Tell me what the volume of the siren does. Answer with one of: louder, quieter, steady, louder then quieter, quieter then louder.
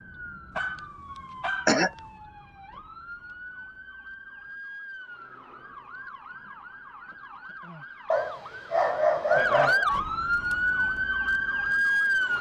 louder.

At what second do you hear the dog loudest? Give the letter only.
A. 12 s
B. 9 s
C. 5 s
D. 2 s
B.